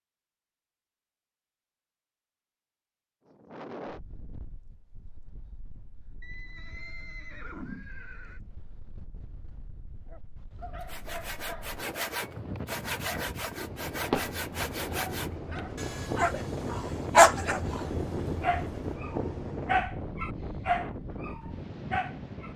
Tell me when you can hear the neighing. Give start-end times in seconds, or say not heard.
6.2-8.4.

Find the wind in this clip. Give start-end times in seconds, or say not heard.
3.2-22.5.